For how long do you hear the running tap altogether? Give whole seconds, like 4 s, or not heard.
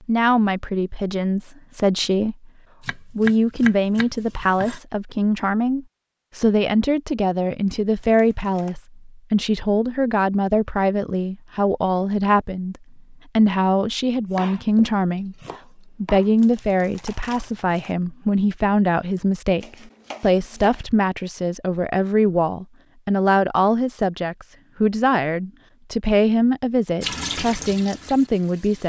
2 s.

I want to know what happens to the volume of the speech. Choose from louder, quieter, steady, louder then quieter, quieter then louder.
steady.